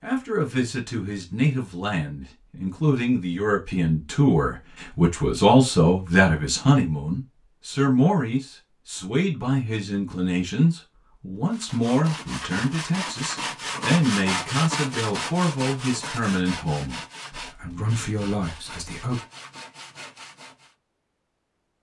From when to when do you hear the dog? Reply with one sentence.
You can't hear the dog here.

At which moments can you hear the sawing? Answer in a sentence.
You can hear the sawing from 11.5 to 20.8 s.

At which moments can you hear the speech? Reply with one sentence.
You can hear the speech from 0.0 to 19.2 s.